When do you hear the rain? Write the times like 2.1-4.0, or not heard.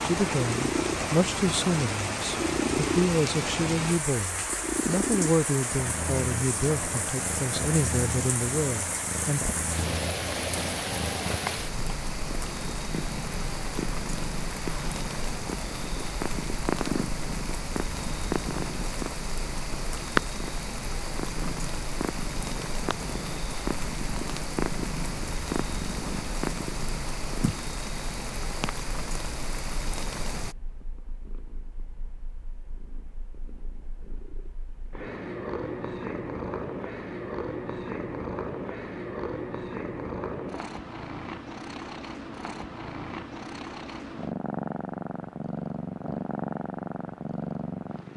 0.0-30.6.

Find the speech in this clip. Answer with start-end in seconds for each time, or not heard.
0.0-9.6.